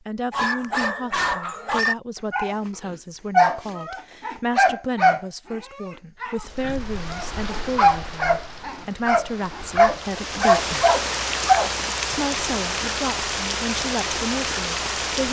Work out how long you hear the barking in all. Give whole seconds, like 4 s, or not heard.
11 s.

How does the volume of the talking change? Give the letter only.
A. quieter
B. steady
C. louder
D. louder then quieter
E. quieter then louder
B.